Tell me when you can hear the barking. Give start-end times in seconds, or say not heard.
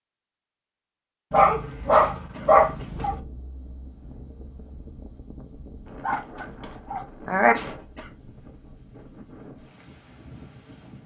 1.3-3.2, 6.0-7.5.